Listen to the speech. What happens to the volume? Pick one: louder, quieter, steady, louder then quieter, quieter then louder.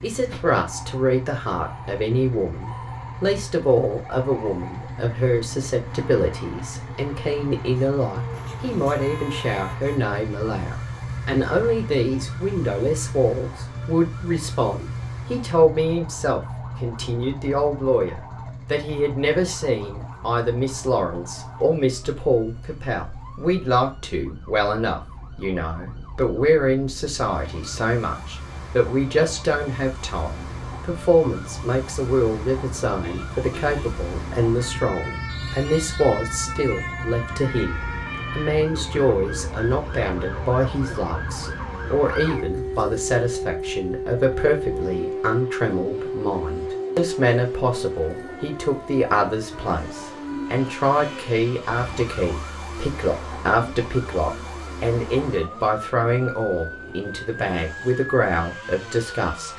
steady.